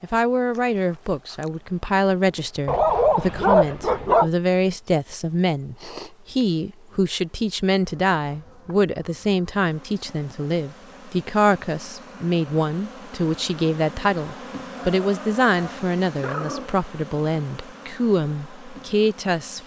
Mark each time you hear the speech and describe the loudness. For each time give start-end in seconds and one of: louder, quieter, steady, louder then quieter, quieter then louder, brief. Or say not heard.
0.0-19.6 steady.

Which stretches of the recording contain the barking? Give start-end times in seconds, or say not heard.
2.6-4.3, 14.8-16.7.